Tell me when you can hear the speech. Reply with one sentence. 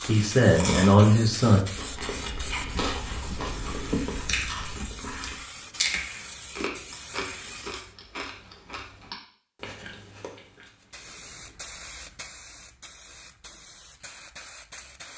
The speech can be heard from 0.1 to 1.6 s.